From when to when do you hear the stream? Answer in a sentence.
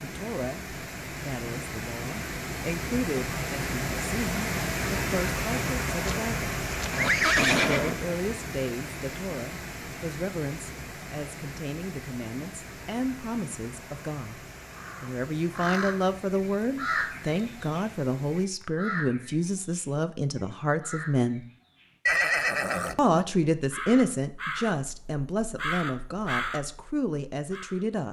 The stream can be heard from 0.0 to 18.5 s.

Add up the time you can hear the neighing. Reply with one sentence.
The neighing can be heard for 3 seconds in total.